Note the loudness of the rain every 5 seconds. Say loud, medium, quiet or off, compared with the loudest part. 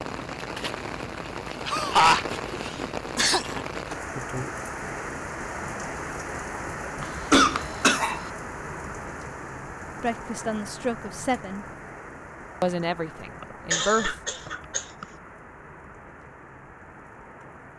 loud, loud, medium, quiet.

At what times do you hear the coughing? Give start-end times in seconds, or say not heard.
1.6-3.6, 7.0-8.3, 13.4-15.1.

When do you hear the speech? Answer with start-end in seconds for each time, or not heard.
10.0-11.7, 12.6-14.2.